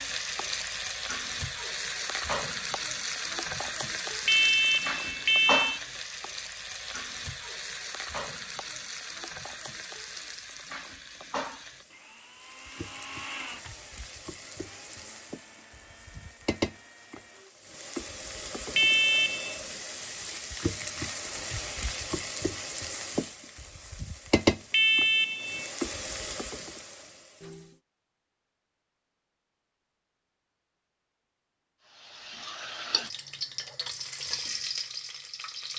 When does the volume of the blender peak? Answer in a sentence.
The loudest moment of the blender is at 13 seconds.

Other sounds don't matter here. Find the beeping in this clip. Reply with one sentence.
You can hear the beeping from 4.2 to 5.8 s, from 18.8 to 19.6 s and from 24.7 to 25.7 s.